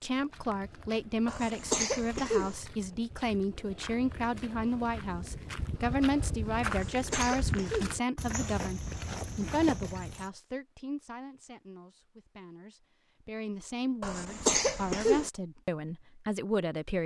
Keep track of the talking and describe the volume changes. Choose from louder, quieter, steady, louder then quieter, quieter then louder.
quieter then louder.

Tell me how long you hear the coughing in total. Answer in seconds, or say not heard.
4 s.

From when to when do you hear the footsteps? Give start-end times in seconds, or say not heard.
0.0-10.3.